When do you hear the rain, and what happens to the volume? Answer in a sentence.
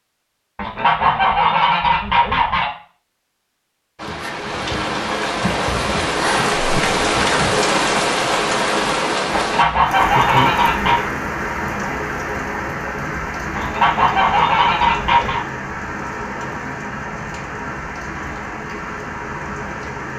The rain can be heard from 4.0 to 20.1 s, getting quieter.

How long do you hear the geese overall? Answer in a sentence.
You can hear the geese for 6 seconds altogether.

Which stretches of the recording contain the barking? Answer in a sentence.
The barking can't be heard in this clip.